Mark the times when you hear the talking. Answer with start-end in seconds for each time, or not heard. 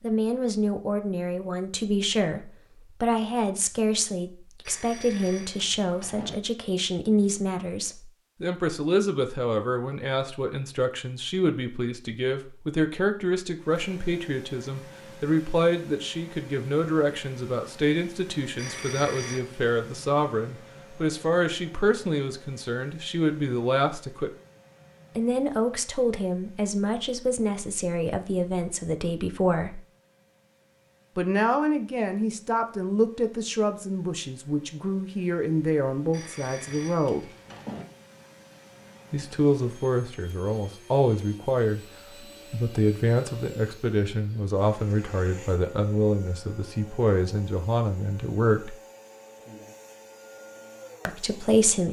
0.0-24.3, 25.1-29.8, 31.1-37.3, 39.1-41.8, 42.5-48.8, 51.0-51.8.